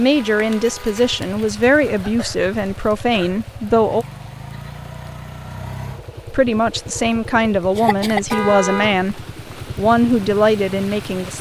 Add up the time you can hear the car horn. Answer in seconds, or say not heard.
2 s.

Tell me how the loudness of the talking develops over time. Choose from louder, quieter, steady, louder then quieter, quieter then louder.
steady.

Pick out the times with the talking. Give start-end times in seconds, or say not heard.
0.0-4.0, 6.3-11.3.